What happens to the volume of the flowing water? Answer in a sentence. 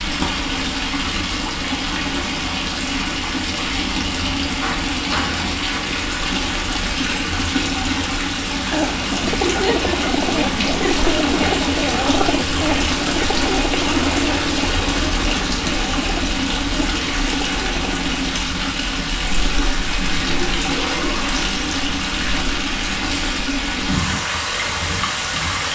The volume of the flowing water stays about the same.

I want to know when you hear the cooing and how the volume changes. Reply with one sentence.
You can hear the cooing from 8.7 to 18.4 s, getting quieter.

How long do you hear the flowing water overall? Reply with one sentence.
You can hear the flowing water for 26 seconds altogether.